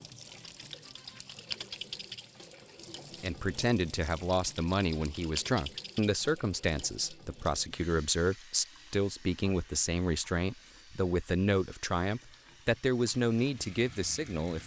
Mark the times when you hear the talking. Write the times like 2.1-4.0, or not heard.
3.2-14.6.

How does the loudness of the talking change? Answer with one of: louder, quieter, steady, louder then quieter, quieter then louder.
steady.